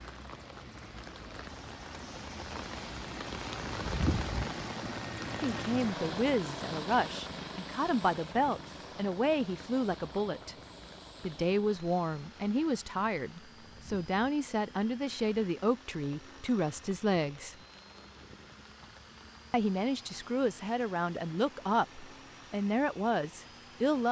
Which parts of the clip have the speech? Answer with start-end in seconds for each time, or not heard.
5.4-10.6, 11.2-17.6, 19.5-24.0.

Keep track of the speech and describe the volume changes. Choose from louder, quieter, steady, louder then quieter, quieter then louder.
steady.